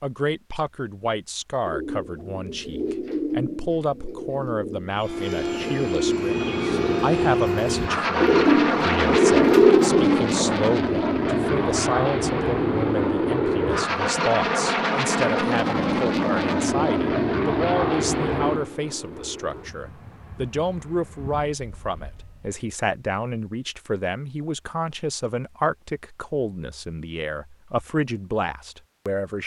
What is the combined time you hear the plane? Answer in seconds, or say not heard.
18 s.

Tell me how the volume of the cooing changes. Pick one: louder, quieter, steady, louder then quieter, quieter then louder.
quieter then louder.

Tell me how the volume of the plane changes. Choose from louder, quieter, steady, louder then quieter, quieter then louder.
quieter.